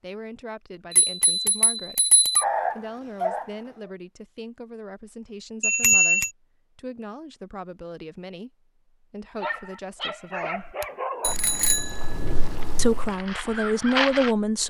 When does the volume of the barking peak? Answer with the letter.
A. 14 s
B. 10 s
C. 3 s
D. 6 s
C.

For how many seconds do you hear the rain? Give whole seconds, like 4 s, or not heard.
not heard.